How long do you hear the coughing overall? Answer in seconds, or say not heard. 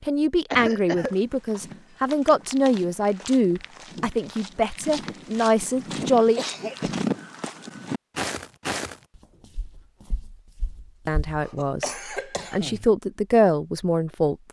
3 s.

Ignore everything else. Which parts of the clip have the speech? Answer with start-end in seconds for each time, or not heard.
0.0-6.4, 11.1-14.4.